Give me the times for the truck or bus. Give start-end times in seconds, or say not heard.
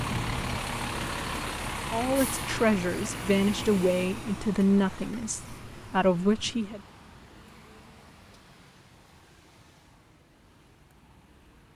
0.0-11.7.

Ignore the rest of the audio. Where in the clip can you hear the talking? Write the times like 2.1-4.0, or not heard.
1.9-6.8.